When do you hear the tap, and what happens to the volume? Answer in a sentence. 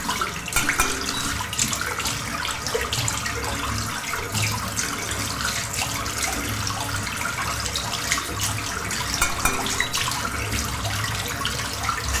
The tap can be heard from 0.0 to 12.1 s, at a steady volume.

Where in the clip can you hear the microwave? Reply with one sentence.
You can't hear the microwave here.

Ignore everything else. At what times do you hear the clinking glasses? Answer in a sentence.
The clinking glasses can be heard from 0.5 to 1.3 s and from 9.2 to 10.1 s.